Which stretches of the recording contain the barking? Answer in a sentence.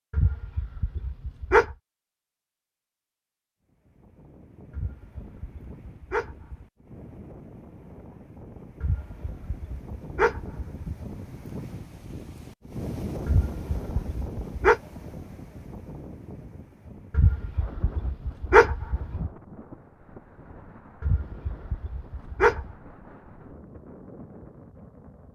You can hear the barking from 0.1 to 1.8 s, from 4.7 to 6.7 s, from 8.8 to 10.9 s, from 13.2 to 14.8 s, from 17.1 to 19.3 s and from 21.0 to 22.8 s.